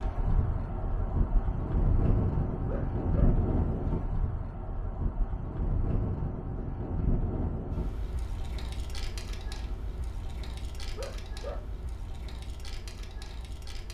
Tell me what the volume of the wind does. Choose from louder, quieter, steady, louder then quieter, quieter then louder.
quieter.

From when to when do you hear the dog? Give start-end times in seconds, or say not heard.
2.6-3.4, 10.9-11.7.